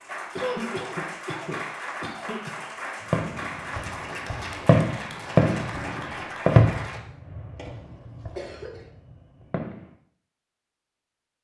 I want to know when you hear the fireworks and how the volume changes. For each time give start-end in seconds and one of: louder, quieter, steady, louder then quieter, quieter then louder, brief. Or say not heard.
3.1-9.9 louder then quieter.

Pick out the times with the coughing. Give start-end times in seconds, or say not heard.
0.3-2.6, 7.5-8.8.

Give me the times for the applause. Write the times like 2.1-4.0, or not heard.
0.0-7.0.